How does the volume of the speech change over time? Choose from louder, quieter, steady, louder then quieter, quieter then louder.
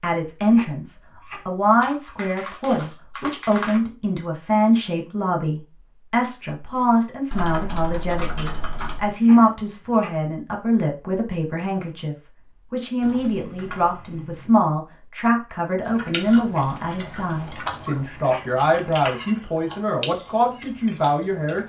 steady.